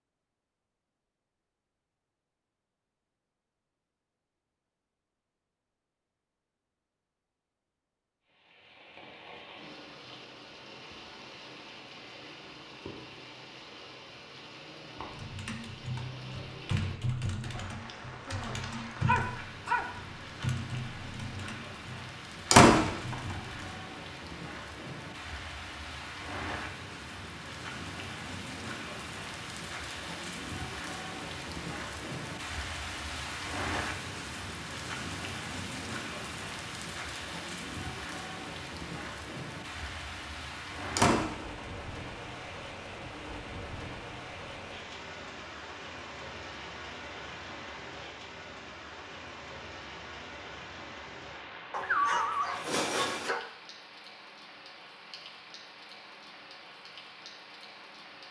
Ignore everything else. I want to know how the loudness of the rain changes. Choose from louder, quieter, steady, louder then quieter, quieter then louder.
louder then quieter.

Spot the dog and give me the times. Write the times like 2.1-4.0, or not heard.
18.2-19.9, 51.7-53.4.